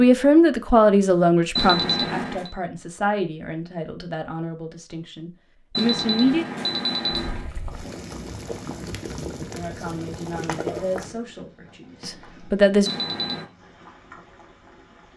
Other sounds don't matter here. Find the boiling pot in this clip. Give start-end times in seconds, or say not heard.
7.1-15.1.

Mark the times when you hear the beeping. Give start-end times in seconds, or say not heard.
1.6-2.5, 5.8-7.5, 12.8-13.4.